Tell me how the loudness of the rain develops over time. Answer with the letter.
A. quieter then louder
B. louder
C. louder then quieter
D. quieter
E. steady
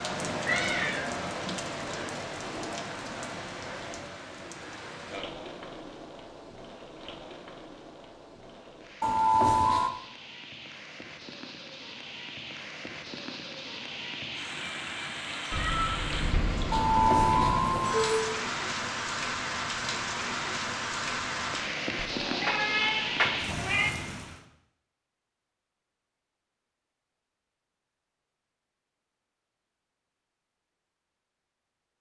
A.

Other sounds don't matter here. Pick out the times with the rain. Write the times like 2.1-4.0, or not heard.
0.0-24.4.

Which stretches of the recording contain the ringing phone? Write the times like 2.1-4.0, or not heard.
9.0-9.9, 16.7-18.4.